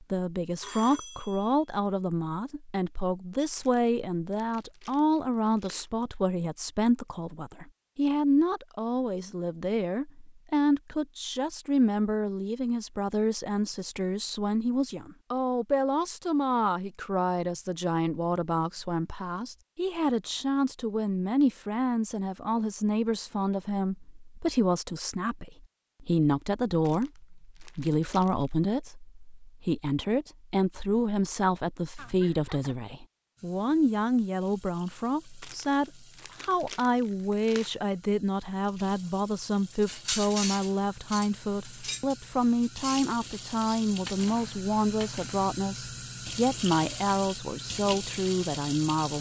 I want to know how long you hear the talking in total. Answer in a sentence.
You can hear the talking for 49 seconds altogether.